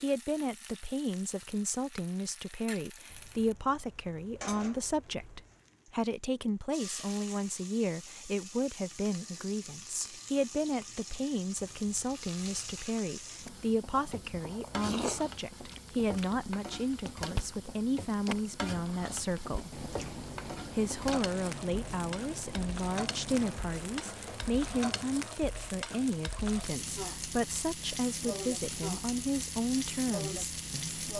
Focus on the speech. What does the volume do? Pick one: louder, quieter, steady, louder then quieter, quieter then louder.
steady.